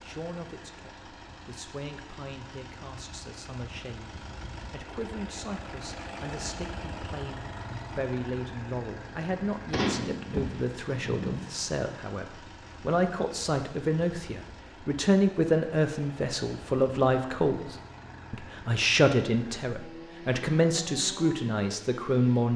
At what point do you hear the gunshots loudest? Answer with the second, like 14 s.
10 s.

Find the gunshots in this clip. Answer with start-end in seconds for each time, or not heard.
9.7-11.3.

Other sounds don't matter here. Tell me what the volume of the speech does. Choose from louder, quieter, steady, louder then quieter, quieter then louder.
louder.